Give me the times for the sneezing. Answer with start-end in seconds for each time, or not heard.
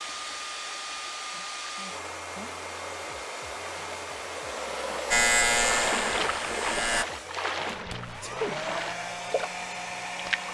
0.9-2.5, 8.2-8.6.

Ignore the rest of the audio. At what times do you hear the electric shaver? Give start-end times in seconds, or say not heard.
5.1-7.0.